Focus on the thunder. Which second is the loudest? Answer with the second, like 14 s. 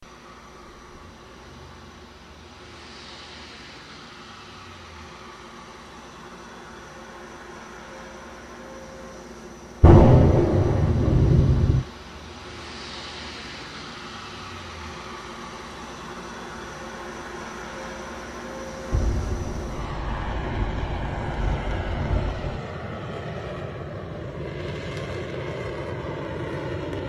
10 s.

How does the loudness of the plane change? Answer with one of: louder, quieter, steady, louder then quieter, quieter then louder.
louder.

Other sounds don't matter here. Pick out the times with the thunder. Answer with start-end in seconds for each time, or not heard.
9.8-11.8, 18.9-22.6.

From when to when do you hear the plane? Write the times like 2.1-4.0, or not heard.
0.0-27.0.